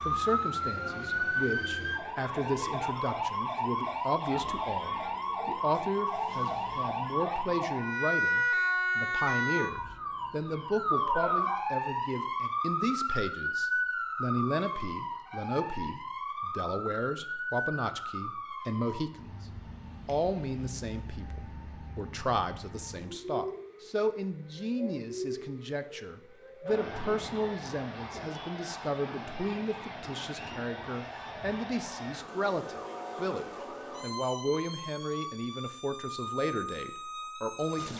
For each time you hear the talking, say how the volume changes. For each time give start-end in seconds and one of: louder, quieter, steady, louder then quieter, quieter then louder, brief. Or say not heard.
0.0-19.4 steady
20.1-37.9 steady.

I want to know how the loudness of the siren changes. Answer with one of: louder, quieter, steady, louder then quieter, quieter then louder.
quieter.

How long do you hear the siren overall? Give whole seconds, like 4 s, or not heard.
38 s.